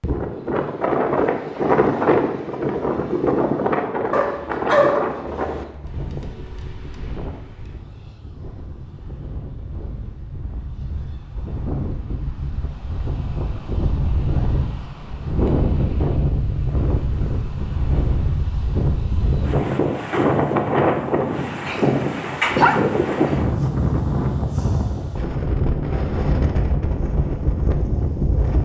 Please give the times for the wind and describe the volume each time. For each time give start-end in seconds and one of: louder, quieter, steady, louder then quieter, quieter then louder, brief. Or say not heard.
0.0-28.5 quieter then louder.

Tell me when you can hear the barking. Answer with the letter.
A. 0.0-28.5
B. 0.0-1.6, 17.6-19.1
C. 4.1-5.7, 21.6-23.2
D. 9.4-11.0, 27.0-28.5
C.